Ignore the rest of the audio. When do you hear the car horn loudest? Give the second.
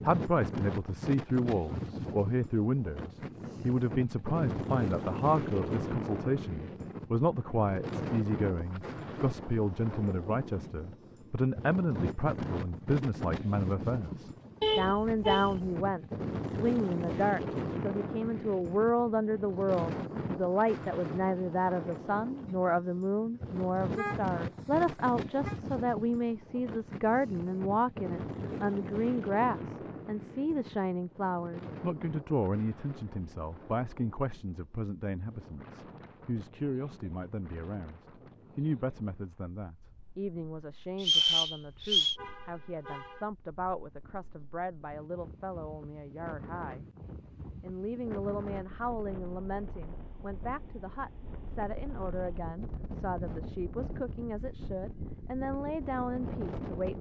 15 s.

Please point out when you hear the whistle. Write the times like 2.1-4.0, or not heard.
41.0-42.1.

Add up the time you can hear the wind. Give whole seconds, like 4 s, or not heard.
57 s.